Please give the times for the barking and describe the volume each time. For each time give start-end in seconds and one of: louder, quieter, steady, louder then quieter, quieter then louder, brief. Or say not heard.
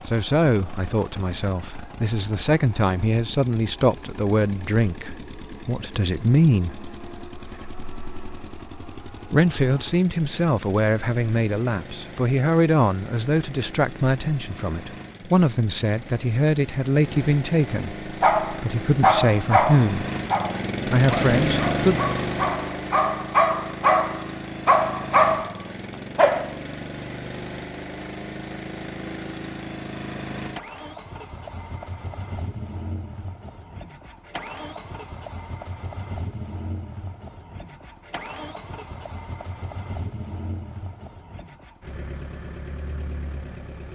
18.2-26.6 quieter then louder.